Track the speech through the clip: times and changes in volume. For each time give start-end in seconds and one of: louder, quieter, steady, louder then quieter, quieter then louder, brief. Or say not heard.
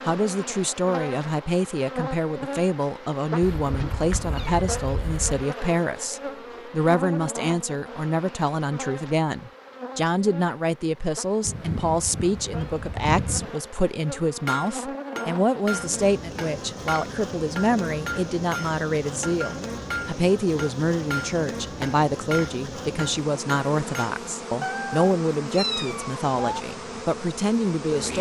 0.1-28.1 steady.